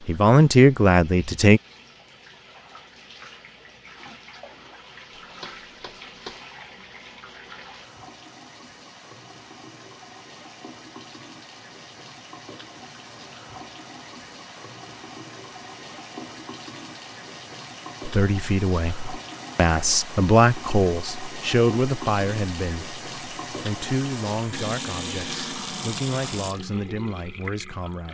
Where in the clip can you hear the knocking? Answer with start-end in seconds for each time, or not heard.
5.2-6.4.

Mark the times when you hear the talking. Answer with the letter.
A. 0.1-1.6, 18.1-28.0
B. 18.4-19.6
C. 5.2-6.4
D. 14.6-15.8
A.